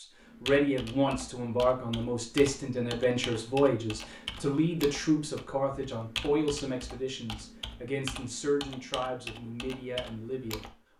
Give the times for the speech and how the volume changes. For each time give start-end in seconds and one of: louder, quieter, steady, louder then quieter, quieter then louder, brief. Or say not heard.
0.0-10.7 quieter.